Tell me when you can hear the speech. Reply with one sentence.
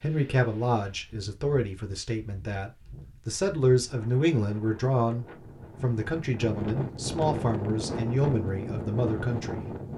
The speech can be heard from 0.0 to 9.7 s.